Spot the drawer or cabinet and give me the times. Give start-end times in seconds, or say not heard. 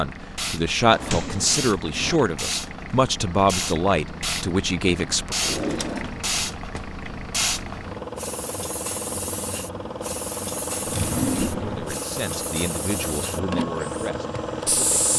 0.9-2.2, 5.4-6.8, 10.8-11.9.